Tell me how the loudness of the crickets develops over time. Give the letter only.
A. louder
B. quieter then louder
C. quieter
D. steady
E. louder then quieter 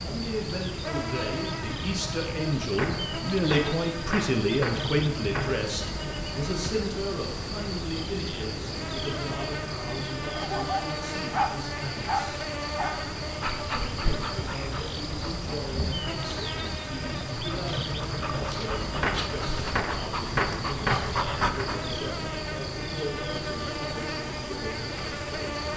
D.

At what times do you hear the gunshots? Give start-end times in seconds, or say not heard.
2.8-5.7, 19.0-21.7.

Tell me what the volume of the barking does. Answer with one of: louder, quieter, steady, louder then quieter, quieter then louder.
quieter then louder.